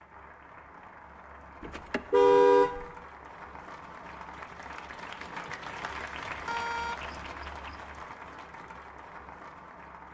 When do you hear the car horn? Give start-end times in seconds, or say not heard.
1.6-2.9, 6.5-7.8.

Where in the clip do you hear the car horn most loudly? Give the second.
2 s.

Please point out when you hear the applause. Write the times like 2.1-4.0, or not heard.
0.0-10.0.